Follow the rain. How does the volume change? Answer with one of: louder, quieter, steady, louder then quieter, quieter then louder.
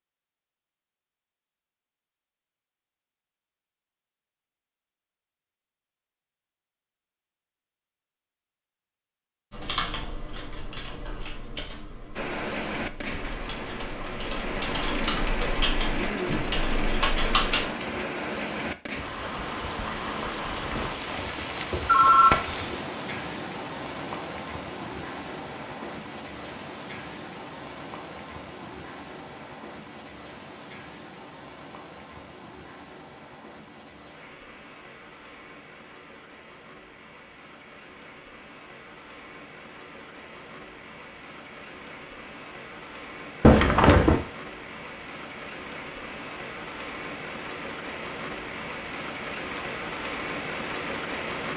quieter then louder.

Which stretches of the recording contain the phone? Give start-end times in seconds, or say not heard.
20.8-22.6, 43.4-44.2.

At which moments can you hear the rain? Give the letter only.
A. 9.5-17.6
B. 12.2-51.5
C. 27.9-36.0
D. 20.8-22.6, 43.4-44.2
B.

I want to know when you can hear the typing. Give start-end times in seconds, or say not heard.
9.5-17.6.